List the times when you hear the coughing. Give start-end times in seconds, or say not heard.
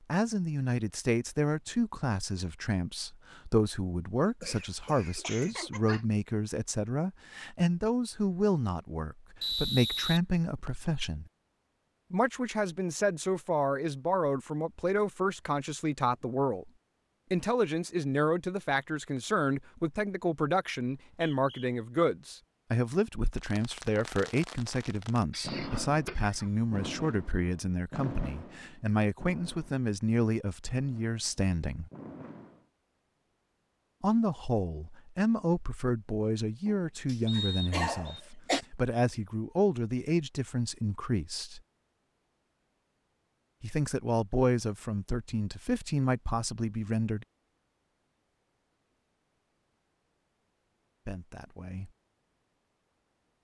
4.2-6.0, 25.3-26.7, 36.6-38.6.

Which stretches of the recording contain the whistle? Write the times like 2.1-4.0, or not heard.
9.4-10.9, 20.9-21.7, 37.2-38.2.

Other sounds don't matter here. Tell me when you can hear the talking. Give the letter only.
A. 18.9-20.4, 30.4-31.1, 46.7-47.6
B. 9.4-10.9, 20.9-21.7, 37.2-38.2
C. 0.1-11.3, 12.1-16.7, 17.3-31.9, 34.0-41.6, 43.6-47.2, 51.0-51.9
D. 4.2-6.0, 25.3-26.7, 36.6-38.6
C.